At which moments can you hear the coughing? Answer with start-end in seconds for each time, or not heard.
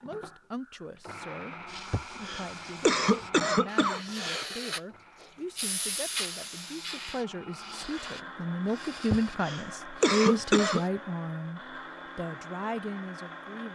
1.9-4.5, 9.1-10.8.